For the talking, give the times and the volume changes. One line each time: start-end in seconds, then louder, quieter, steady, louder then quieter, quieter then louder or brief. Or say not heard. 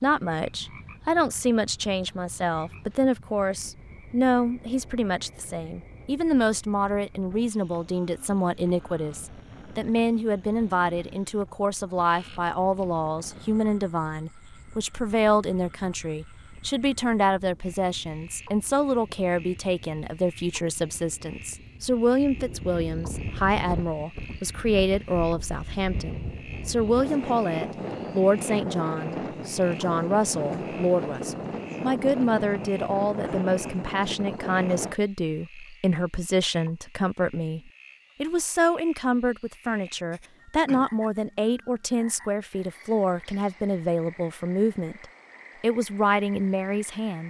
0.0-47.2 steady.